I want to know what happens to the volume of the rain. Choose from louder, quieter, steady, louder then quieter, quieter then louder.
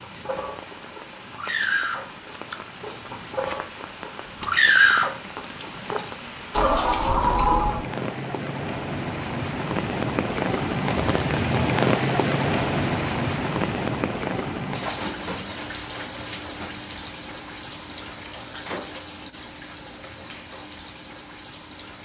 louder then quieter.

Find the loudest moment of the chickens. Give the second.
5 s.